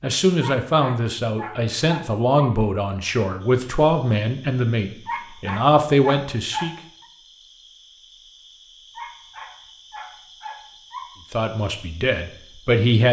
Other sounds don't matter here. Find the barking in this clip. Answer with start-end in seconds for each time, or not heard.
0.4-2.5, 5.0-7.0, 8.9-11.1.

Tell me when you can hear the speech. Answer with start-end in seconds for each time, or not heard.
0.0-6.8, 11.3-13.0.